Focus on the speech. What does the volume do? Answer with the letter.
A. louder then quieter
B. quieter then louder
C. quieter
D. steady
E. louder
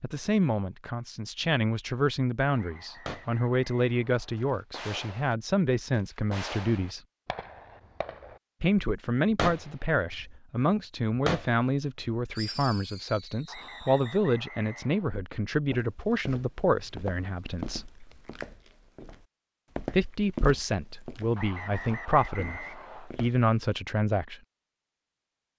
D.